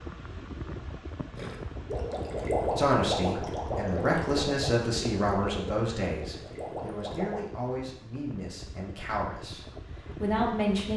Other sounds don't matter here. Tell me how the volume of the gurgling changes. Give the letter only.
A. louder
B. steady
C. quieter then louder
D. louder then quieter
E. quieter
E.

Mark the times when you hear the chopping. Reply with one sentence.
The chopping can't be heard in this clip.